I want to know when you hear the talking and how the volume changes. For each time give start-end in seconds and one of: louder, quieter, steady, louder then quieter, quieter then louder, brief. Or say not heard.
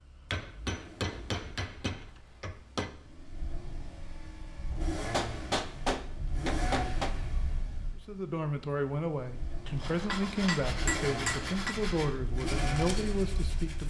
8.1-13.8 steady.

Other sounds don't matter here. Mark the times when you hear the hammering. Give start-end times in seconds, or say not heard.
0.3-3.0, 4.7-7.2, 9.7-11.8.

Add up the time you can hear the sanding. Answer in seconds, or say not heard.
4 s.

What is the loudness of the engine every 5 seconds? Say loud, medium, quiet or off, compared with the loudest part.
medium, loud, loud.